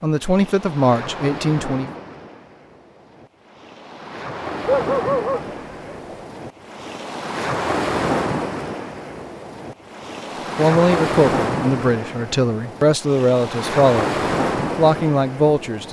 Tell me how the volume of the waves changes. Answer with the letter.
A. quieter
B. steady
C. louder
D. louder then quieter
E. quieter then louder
C.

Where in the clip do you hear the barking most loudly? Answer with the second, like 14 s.
5 s.